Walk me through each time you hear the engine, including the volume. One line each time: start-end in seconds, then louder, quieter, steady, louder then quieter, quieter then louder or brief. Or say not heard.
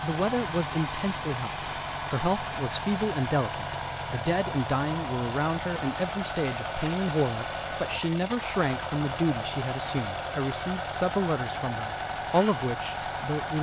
0.0-13.5 steady.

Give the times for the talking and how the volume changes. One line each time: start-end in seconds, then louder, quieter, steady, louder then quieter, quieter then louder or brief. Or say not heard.
0.0-13.5 steady.